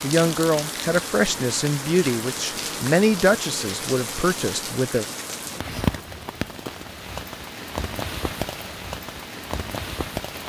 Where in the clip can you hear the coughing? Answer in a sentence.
The coughing can't be heard in this clip.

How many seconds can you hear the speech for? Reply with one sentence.
You can hear the speech for 5 seconds altogether.